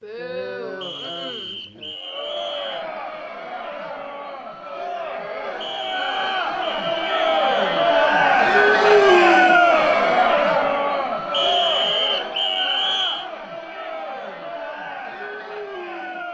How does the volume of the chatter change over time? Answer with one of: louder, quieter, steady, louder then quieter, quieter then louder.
louder then quieter.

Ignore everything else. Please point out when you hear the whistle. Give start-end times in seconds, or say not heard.
0.8-2.9, 5.6-8.2, 11.3-13.2.